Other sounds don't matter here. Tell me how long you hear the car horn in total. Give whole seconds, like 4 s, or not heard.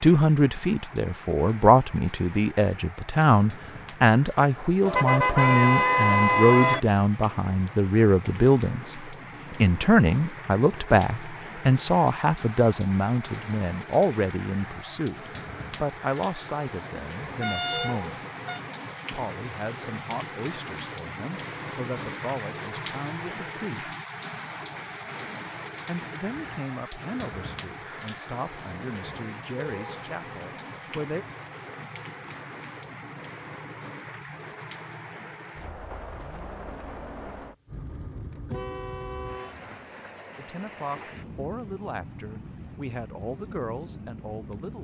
4 s.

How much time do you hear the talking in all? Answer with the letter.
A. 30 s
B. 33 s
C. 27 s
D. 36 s
B.